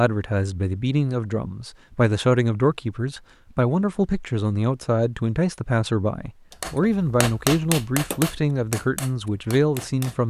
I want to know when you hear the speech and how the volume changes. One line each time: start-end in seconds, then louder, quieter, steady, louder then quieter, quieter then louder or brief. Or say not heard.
0.0-10.2 steady.